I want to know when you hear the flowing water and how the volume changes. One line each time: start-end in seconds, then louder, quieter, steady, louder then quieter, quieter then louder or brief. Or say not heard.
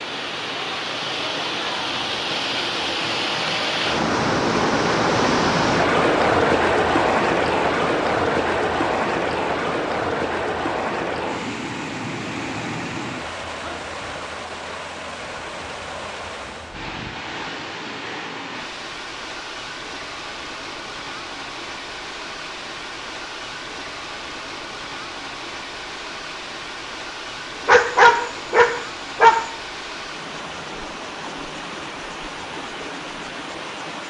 0.0-34.0 quieter.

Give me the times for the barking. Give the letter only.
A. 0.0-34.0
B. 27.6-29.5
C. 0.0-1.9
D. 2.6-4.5
B.